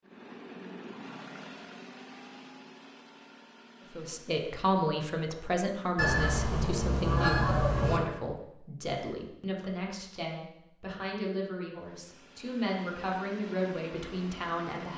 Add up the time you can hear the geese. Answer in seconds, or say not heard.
2 s.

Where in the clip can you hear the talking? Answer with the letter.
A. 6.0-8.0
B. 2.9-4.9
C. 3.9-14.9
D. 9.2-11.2
C.